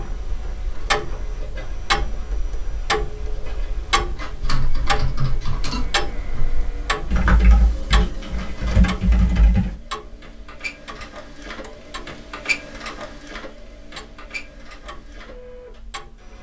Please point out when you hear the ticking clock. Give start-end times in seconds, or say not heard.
0.0-16.3.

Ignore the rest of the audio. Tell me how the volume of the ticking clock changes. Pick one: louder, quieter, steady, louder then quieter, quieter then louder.
quieter.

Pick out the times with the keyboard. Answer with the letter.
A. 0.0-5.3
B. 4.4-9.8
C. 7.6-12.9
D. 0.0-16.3
B.